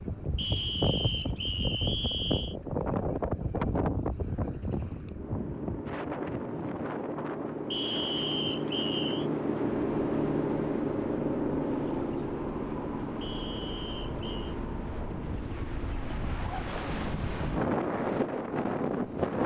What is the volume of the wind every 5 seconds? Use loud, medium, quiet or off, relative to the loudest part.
loud, medium, quiet, loud.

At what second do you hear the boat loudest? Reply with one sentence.
The loudest moment of the boat is at 10 seconds.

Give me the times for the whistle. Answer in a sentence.
You can hear the whistle from 0.3 to 2.5 s, from 7.7 to 9.2 s and from 13.2 to 14.6 s.